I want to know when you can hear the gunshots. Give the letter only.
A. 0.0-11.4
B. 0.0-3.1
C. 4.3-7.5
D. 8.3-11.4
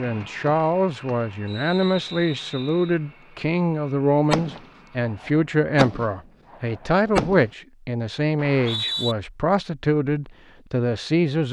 C.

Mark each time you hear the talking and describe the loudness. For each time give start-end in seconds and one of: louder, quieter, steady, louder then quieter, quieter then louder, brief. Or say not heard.
0.0-11.4 steady.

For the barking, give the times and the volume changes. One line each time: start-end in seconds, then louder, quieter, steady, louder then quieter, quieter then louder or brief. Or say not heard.
not heard.